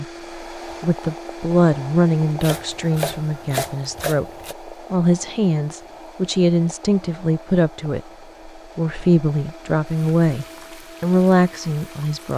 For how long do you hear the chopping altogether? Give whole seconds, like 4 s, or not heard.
2 s.